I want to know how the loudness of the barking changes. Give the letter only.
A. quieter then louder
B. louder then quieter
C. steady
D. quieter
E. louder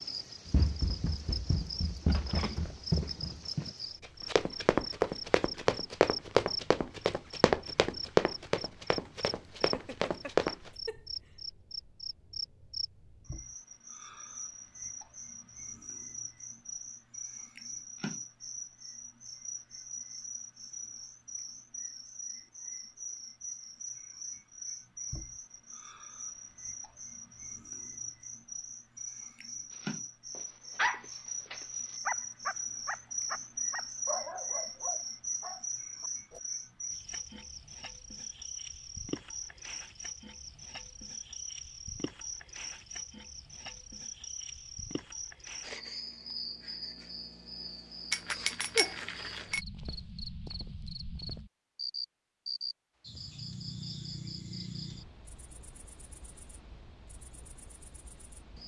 D.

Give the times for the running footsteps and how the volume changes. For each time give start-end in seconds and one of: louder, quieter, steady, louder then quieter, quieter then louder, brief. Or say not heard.
0.5-10.7 louder then quieter.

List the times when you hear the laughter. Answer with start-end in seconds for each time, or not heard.
9.6-11.1.